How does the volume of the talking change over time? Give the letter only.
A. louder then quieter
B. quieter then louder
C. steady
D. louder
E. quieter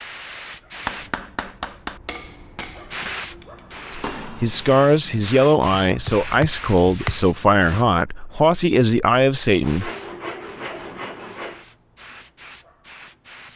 C.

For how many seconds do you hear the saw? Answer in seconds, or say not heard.
2 s.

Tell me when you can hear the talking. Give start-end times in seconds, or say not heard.
4.0-9.9.